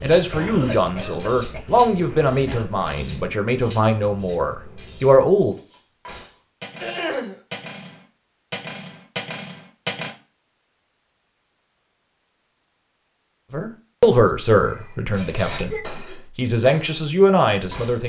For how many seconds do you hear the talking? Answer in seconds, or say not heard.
10 s.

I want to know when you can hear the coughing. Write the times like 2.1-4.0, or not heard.
0.3-2.7, 6.8-7.3, 14.7-16.2.